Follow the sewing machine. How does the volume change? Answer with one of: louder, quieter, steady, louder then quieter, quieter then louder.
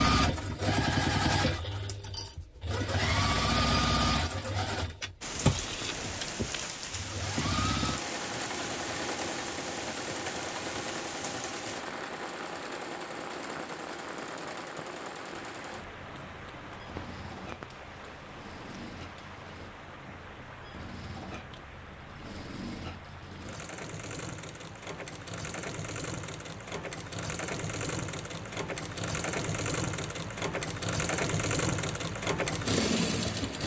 quieter then louder.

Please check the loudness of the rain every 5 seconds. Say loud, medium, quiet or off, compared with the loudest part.
off, loud, loud, medium, medium, medium, medium.